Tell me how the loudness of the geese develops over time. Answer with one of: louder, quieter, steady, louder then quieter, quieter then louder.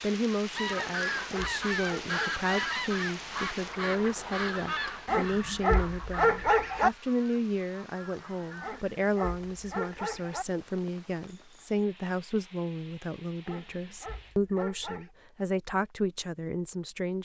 quieter.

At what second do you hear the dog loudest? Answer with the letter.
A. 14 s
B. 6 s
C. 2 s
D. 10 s
B.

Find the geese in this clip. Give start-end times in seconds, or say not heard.
0.5-8.8.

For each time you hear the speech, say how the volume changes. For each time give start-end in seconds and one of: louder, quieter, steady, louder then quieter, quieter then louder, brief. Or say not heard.
0.0-17.2 steady.